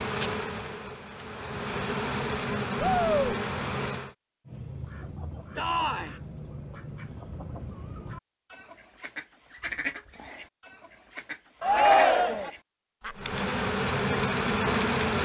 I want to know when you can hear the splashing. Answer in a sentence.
You can't hear the splashing here.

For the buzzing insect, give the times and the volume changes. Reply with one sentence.
The buzzing insect can be heard from 0.0 to 4.2 s, getting louder; and briefly from 13.2 to 15.2 s.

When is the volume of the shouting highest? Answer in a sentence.
The loudest moment of the shouting is at 12 seconds.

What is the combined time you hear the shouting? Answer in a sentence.
The shouting can be heard for 2 seconds in total.